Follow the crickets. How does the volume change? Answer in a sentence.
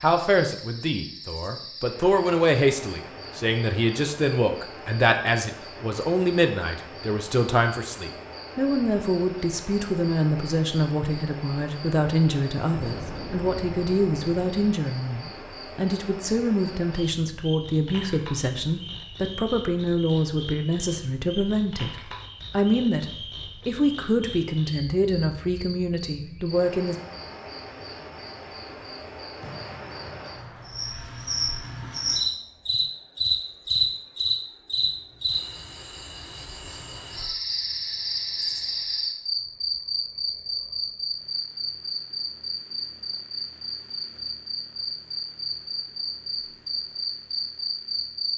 The volume of the crickets goes up.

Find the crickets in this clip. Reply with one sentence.
The crickets can be heard from 0.0 to 48.3 s.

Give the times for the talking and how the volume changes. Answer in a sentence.
The talking can be heard from 0.0 to 26.9 s, at a steady volume.